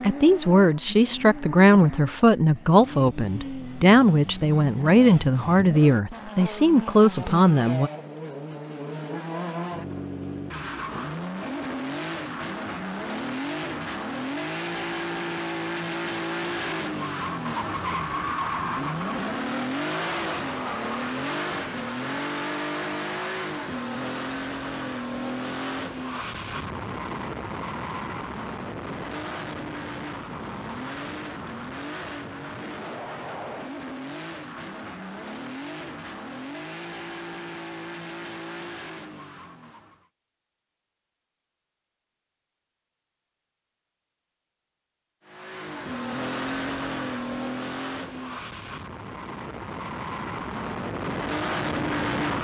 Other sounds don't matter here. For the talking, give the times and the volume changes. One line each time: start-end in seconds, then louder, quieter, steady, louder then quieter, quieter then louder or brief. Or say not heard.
0.0-7.9 steady.